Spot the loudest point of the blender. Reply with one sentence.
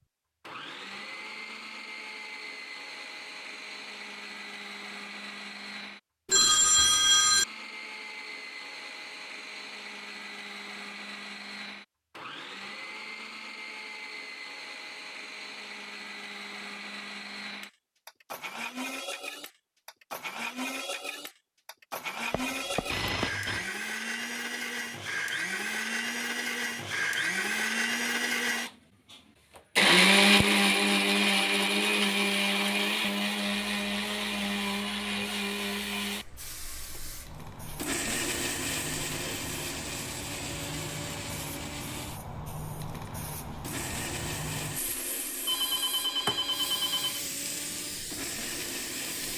The volume of the blender peaks at 30 seconds.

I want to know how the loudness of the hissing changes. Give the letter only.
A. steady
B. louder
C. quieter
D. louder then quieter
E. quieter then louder
B.